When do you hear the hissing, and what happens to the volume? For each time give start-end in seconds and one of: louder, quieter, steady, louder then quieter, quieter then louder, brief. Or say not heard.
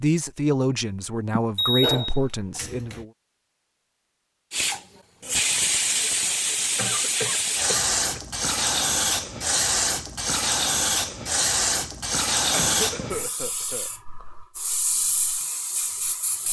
4.5-16.4 quieter.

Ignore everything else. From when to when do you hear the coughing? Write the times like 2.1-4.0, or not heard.
1.4-2.6, 6.8-8.2, 12.5-13.9.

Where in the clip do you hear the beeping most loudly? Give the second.
2 s.